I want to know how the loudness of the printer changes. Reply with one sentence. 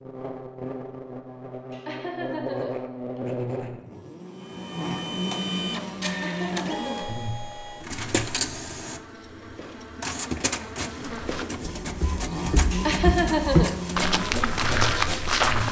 The volume of the printer stays about the same.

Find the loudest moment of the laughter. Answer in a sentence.
The volume of the laughter peaks at 13 seconds.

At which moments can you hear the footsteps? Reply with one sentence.
You can hear the footsteps from 11.1 to 15.6 s.